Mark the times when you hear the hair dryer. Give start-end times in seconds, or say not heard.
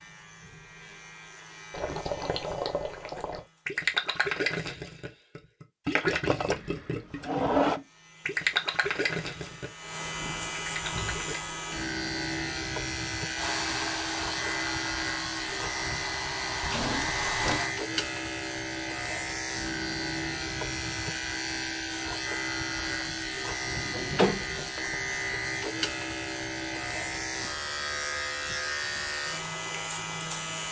13.3-17.8.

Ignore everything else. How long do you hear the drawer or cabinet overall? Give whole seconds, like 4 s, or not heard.
5 s.